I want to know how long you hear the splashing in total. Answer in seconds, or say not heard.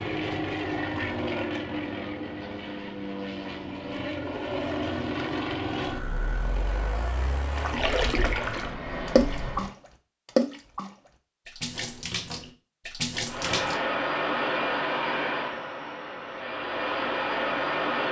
6 s.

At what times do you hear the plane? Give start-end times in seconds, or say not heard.
0.0-9.8, 13.2-18.0.